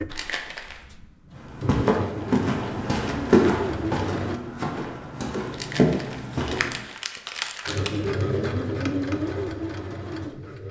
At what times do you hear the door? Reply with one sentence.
You can't hear the door here.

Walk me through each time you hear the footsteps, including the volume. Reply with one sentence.
You can hear the footsteps from 1.3 to 6.8 s, getting quieter then louder.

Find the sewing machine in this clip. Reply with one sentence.
You can hear the sewing machine from 0.0 to 4.4 s and from 7.7 to 10.6 s.